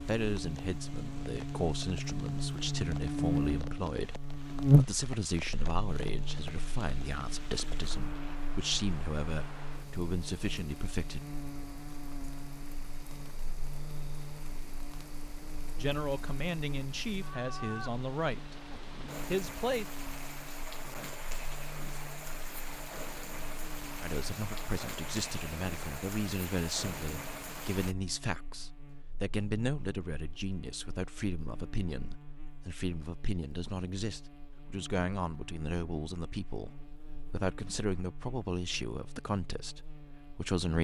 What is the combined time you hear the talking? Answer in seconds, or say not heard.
32 s.